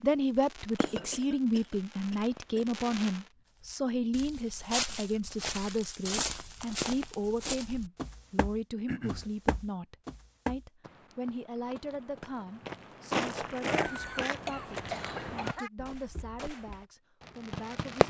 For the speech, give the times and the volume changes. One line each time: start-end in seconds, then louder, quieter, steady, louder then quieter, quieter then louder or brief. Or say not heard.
0.0-18.0 quieter.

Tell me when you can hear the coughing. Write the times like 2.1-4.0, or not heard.
0.8-2.6, 8.8-9.3, 13.7-15.7.